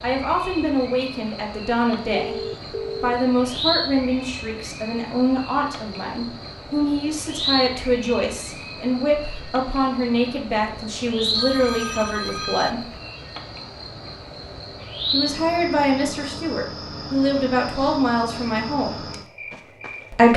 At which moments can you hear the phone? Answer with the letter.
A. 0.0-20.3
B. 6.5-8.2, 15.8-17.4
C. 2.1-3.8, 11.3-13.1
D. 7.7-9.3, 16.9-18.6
C.